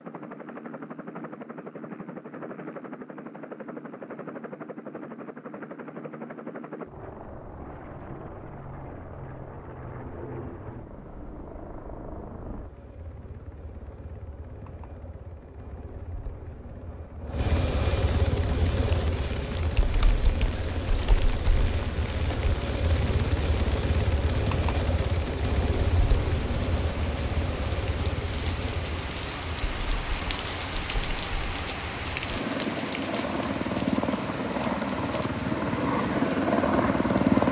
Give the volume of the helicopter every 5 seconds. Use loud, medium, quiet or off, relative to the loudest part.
quiet, quiet, quiet, medium, medium, medium, medium, loud.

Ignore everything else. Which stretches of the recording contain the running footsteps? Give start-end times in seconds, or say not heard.
not heard.